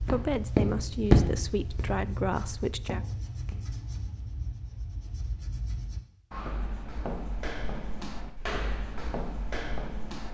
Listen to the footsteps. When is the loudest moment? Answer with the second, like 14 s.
1 s.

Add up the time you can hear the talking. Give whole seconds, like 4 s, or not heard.
3 s.